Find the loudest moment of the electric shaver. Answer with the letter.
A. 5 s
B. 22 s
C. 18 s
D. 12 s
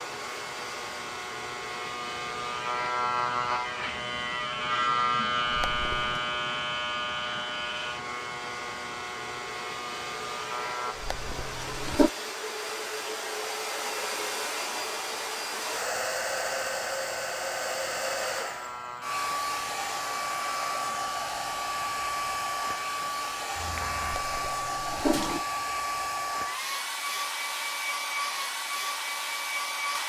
A.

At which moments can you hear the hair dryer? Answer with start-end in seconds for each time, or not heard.
0.0-30.0.